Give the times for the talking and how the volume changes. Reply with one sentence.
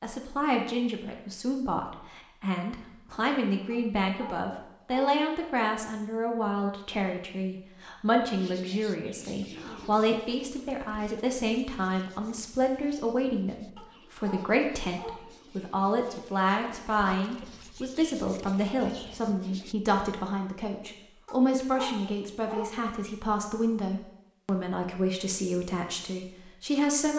The talking can be heard from 0.0 to 27.1 s, at a steady volume.